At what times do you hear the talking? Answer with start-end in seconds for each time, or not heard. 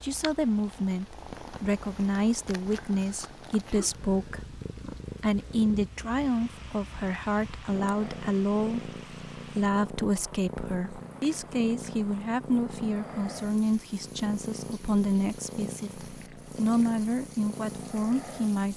0.0-4.5, 5.2-18.7.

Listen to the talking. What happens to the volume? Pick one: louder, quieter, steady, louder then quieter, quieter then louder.
steady.